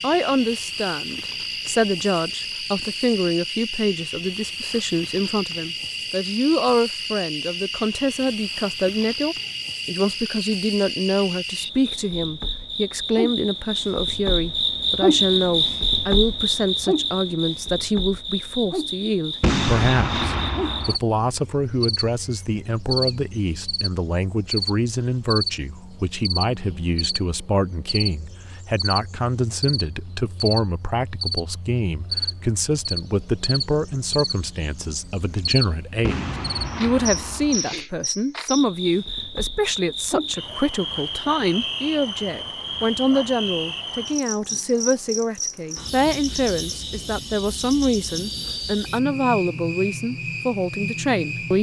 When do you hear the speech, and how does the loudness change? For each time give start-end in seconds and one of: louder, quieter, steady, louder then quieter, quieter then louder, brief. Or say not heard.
0.0-51.5 steady.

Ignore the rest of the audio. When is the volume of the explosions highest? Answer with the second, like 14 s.
20 s.